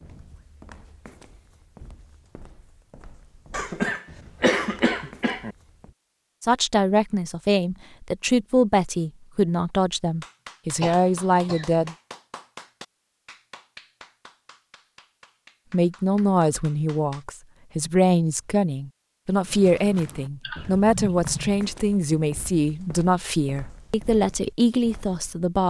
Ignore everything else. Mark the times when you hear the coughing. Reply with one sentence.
You can hear the coughing from 3.5 to 5.5 s, from 10.8 to 11.8 s and from 20.4 to 21.6 s.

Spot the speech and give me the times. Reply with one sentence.
You can hear the speech from 6.4 to 11.9 s and from 15.7 to 25.6 s.